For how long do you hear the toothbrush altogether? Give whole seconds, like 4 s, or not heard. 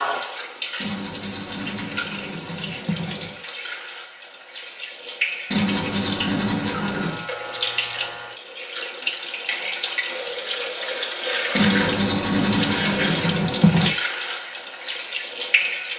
7 s.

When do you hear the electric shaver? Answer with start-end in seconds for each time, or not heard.
6.9-8.3.